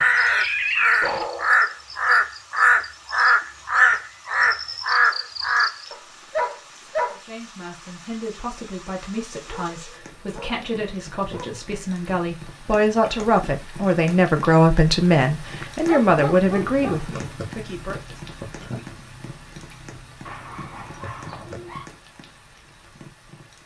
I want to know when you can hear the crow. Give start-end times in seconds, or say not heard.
0.0-6.0.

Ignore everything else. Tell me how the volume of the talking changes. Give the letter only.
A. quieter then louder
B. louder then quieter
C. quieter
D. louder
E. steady
D.